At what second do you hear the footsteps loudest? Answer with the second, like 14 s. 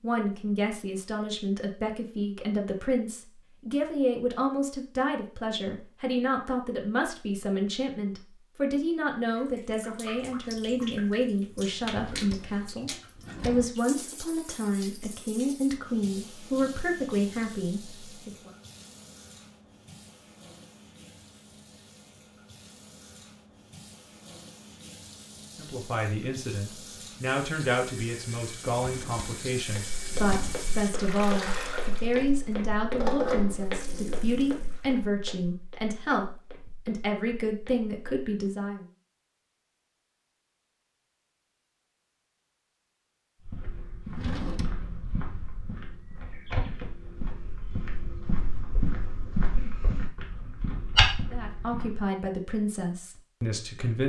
51 s.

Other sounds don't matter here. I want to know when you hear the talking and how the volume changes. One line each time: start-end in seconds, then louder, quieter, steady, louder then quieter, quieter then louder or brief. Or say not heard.
0.0-18.5 steady
25.6-38.9 steady
51.3-54.0 brief.